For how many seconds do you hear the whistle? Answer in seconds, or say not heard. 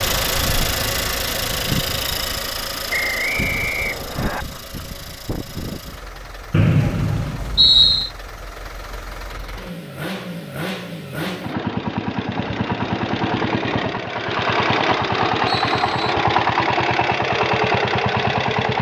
4 s.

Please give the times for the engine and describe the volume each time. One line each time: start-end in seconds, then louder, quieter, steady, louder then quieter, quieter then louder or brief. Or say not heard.
0.0-18.7 quieter then louder.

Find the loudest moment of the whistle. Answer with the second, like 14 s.
8 s.